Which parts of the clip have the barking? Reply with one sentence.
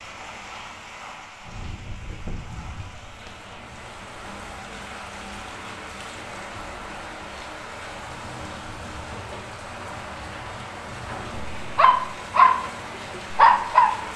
The barking can be heard from 11.1 to 13.9 s.